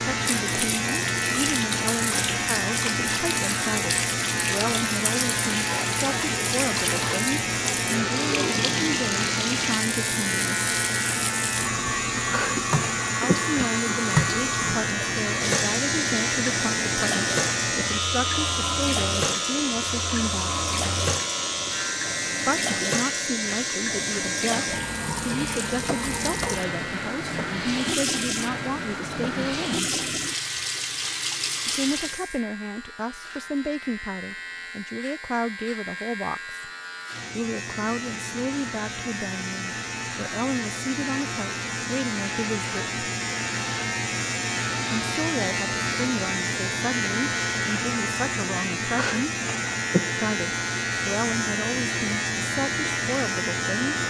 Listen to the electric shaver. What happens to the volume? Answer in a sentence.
The volume of the electric shaver goes down, then up.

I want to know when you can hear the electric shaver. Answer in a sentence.
You can hear the electric shaver from 0.0 to 54.0 s.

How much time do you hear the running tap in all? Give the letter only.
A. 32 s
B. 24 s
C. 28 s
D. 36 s
A.